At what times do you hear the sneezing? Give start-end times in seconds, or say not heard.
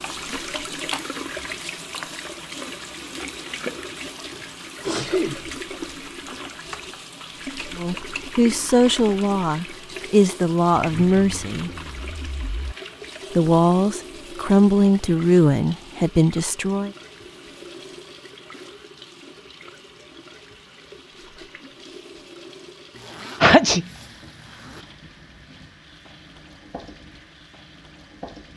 3.9-5.5, 23.4-23.9.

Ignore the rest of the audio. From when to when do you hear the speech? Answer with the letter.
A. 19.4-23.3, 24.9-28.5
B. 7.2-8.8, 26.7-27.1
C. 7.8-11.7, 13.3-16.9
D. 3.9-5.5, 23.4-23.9
C.